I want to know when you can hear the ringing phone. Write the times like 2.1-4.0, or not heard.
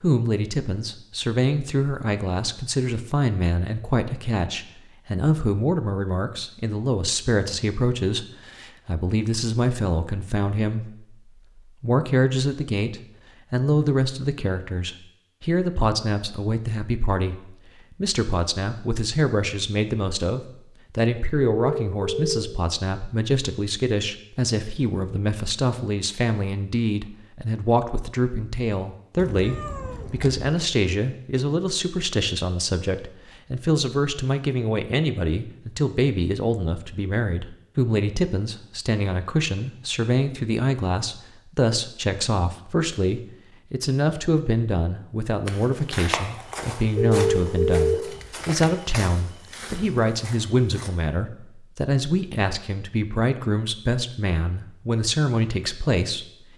21.6-22.6, 47.0-48.2.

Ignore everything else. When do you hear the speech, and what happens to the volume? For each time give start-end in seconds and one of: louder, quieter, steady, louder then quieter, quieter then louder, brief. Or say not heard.
0.0-56.3 steady.